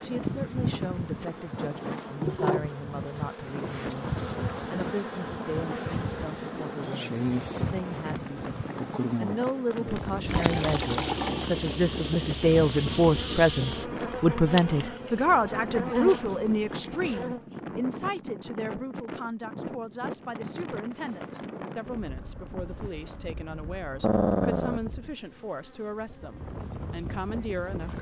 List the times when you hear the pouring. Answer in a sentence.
The pouring can be heard from 10.2 to 11.4 s.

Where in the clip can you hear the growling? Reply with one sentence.
The growling can be heard from 24.0 to 24.8 s.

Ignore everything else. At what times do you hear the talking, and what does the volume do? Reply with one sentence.
The talking can be heard from 0.0 to 27.9 s, getting louder then quieter.